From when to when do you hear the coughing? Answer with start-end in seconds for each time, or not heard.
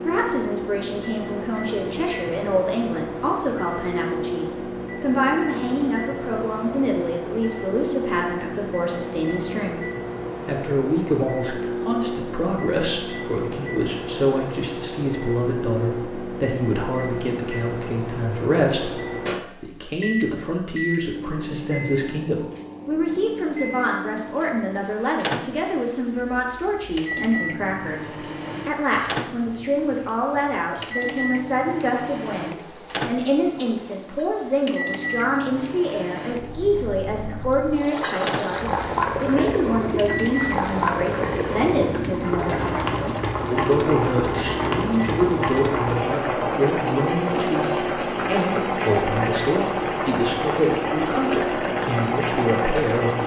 not heard.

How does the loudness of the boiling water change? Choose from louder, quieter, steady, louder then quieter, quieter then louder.
louder.